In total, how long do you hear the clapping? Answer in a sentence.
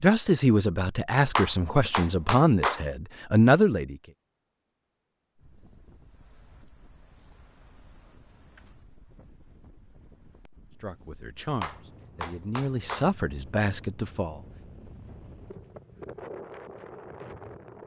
The clapping can be heard for 3 seconds in total.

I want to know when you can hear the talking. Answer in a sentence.
The talking can be heard from 0.0 to 4.0 s and from 10.8 to 14.4 s.